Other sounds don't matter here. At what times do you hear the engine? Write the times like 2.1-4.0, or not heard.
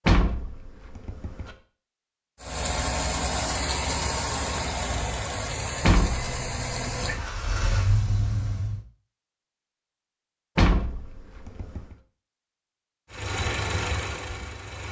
2.4-8.8, 13.1-14.8.